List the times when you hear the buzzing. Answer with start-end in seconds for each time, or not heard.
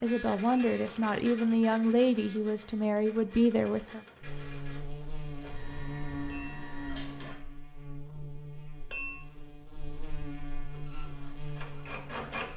4.2-12.5.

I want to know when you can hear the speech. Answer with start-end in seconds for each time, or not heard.
0.0-4.0.